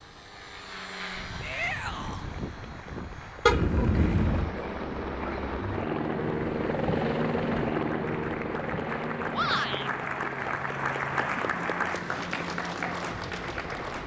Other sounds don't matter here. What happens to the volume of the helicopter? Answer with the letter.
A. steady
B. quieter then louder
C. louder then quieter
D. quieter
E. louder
C.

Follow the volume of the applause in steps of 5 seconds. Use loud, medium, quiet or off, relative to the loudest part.
quiet, medium, loud.